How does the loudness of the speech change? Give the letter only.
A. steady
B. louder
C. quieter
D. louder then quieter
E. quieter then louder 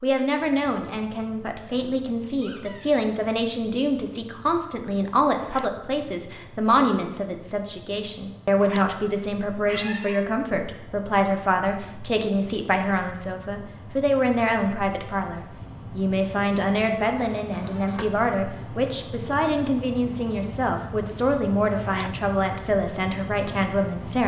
A.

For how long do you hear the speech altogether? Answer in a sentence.
The speech can be heard for 24 seconds in total.